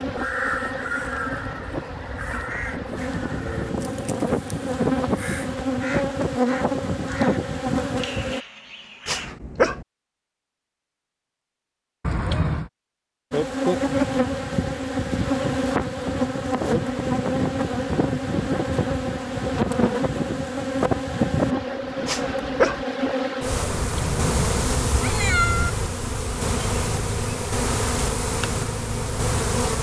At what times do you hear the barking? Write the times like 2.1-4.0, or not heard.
9.1-9.8, 22.1-22.9.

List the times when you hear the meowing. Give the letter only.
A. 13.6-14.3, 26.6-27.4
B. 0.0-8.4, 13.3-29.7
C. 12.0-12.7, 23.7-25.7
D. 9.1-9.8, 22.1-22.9
C.